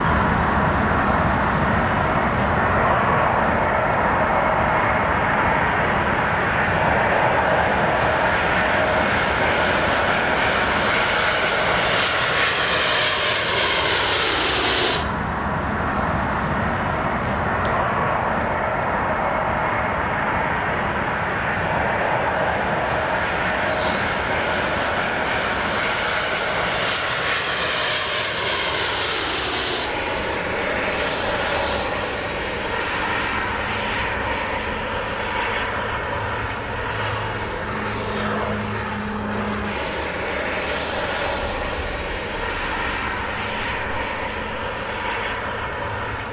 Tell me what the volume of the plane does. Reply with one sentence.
The volume of the plane goes down.